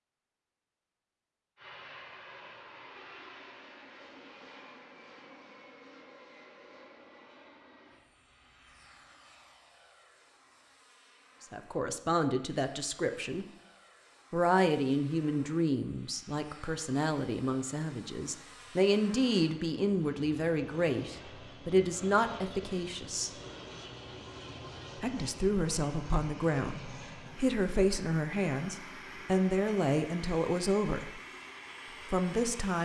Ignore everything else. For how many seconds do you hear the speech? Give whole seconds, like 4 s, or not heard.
18 s.